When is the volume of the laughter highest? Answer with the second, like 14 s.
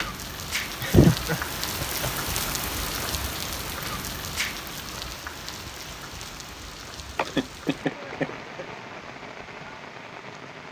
1 s.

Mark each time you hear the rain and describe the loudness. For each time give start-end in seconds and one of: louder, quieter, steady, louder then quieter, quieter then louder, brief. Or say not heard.
0.0-10.6 quieter.